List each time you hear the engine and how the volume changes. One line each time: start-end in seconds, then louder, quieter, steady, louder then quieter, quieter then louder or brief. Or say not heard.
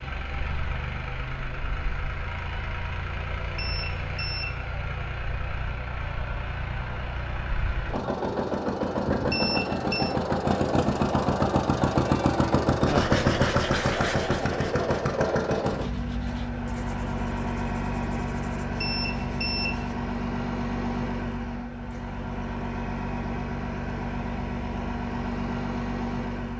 0.0-26.5 louder then quieter.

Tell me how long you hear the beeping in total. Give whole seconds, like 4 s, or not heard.
3 s.